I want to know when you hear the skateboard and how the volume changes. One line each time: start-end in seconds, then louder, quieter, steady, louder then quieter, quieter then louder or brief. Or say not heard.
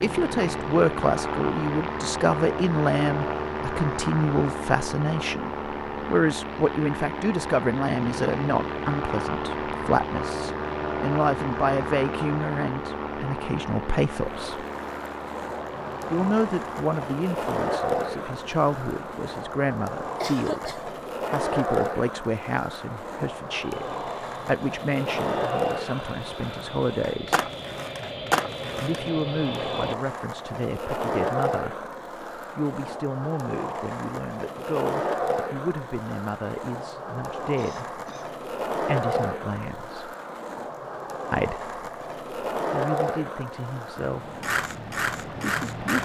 14.2-46.0 steady.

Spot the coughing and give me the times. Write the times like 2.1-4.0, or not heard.
20.2-21.0, 37.5-38.3.